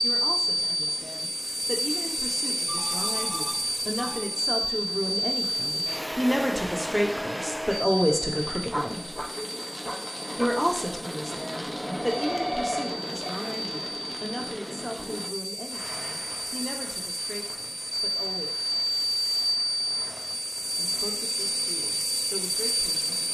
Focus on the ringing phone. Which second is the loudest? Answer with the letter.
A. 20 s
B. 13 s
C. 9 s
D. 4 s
B.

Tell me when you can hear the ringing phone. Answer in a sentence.
The ringing phone can be heard from 2.6 to 4.3 s and from 11.8 to 13.3 s.